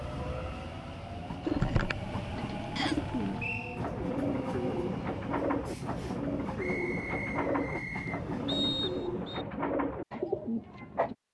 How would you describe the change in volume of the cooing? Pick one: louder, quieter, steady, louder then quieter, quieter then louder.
steady.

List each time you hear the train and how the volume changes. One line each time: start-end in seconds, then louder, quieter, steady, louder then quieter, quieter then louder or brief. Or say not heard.
0.0-9.2 steady.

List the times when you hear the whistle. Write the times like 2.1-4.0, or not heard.
2.8-3.8, 8.4-9.4.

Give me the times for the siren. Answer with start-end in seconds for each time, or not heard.
not heard.